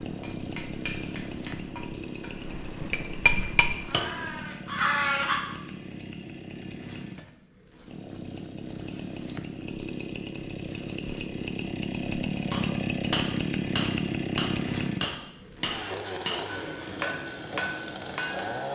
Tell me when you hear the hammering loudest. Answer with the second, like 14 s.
3 s.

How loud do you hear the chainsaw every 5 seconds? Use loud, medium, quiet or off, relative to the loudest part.
medium, medium, loud, medium.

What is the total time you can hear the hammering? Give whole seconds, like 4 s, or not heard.
10 s.